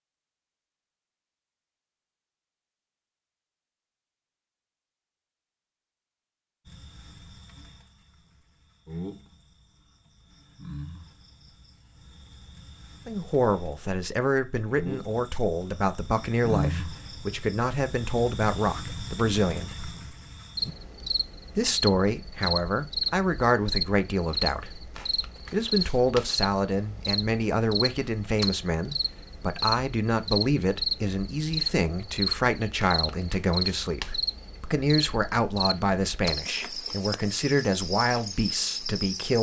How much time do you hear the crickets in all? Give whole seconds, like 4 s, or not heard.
33 s.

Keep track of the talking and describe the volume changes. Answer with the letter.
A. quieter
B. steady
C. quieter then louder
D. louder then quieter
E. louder
B.